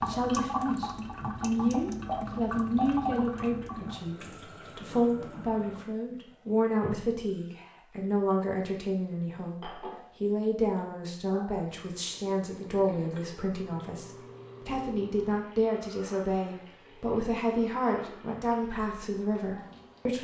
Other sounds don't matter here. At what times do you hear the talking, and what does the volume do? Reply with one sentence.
The talking can be heard from 0.0 to 20.1 s, at a steady volume.